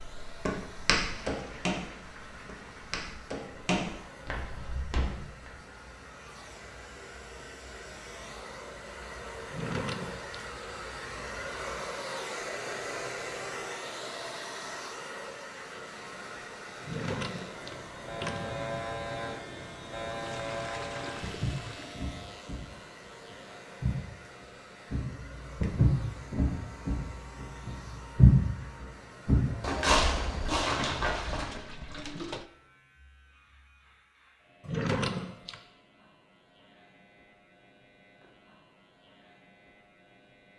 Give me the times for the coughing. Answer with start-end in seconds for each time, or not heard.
not heard.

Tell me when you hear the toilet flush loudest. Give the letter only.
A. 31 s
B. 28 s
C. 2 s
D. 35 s
A.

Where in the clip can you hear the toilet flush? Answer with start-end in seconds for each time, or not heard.
1.1-3.0, 20.2-22.0, 30.4-32.5.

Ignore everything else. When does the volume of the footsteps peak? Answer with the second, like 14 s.
28 s.